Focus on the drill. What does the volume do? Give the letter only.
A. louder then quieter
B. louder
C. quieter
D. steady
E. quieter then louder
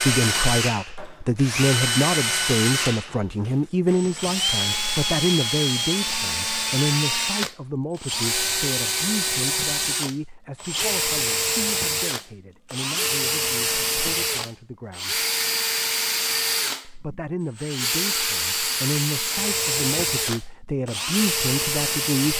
D.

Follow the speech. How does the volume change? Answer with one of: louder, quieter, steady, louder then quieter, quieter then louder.
quieter then louder.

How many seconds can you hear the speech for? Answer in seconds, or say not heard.
21 s.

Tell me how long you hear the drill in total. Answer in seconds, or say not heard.
22 s.